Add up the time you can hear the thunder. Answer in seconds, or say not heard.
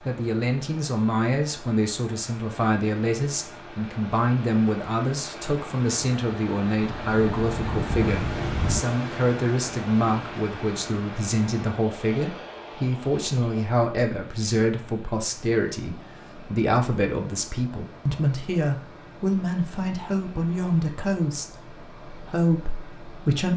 2 s.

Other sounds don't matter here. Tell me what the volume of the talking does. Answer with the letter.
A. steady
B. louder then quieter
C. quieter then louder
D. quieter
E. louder
A.